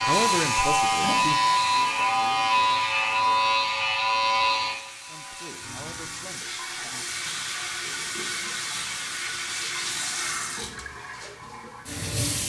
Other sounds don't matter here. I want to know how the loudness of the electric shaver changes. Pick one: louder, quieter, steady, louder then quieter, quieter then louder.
quieter.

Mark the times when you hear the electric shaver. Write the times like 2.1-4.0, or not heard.
0.0-6.5.